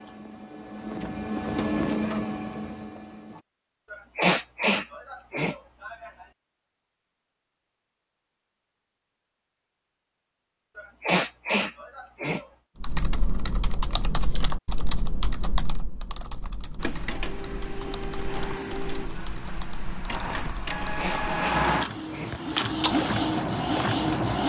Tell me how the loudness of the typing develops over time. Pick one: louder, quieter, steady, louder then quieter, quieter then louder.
quieter.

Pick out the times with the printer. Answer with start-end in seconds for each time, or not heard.
0.0-3.5, 16.8-24.4.